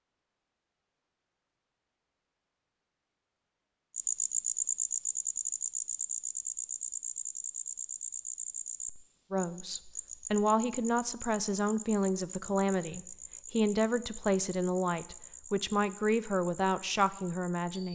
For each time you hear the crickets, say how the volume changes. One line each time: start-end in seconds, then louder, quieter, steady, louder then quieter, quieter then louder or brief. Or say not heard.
4.0-17.9 quieter.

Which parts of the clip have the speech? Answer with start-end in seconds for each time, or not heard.
9.3-17.9.